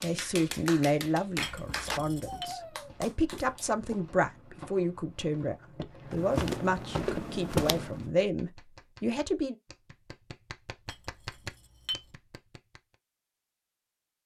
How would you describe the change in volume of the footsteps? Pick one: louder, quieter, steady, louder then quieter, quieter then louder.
louder.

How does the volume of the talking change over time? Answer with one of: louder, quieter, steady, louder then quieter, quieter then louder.
steady.